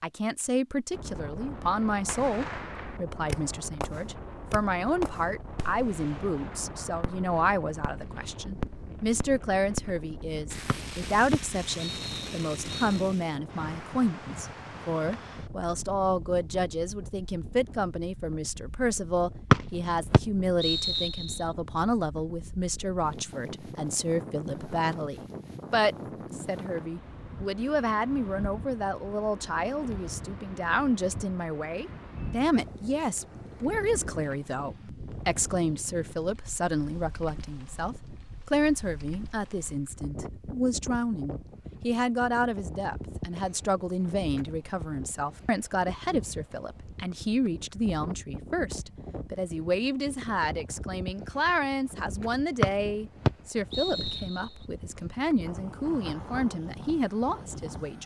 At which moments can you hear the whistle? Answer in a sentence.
You can hear the whistle from 10.7 to 13.0 s, from 19.5 to 21.4 s and from 52.6 to 54.5 s.